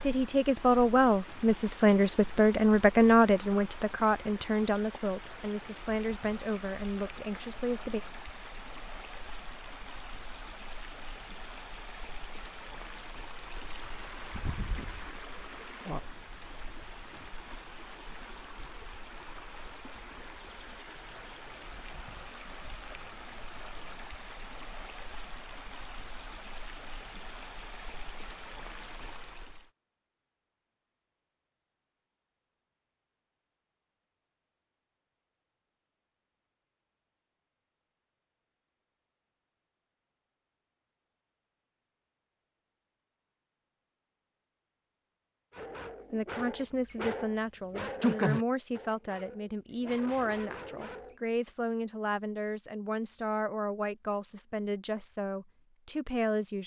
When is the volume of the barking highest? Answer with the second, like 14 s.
48 s.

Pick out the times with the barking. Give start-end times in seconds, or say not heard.
45.5-51.1.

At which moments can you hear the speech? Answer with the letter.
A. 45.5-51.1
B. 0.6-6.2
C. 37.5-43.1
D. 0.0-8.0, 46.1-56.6
D.